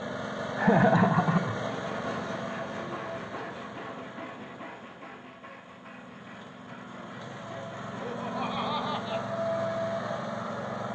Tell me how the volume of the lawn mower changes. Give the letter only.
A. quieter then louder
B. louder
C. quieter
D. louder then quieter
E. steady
A.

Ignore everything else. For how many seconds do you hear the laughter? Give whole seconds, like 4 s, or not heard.
2 s.